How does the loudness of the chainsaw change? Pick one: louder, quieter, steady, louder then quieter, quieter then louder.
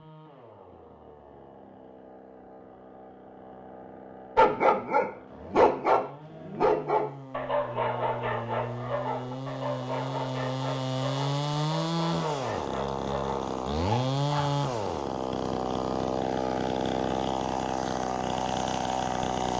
louder.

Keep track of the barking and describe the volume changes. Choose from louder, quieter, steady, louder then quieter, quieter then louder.
quieter.